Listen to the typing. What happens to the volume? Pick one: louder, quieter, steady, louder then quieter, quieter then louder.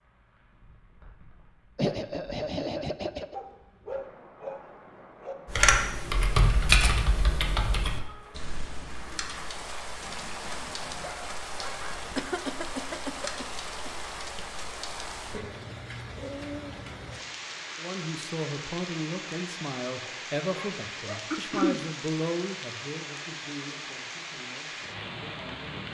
quieter then louder.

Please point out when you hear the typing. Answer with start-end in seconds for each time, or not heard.
5.5-15.3.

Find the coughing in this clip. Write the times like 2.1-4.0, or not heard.
1.8-3.4, 12.2-13.9, 21.3-21.8.